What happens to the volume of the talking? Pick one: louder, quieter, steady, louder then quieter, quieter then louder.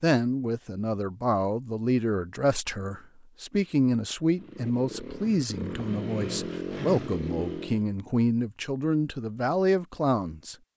steady.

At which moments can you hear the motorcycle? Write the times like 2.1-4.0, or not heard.
4.3-7.8.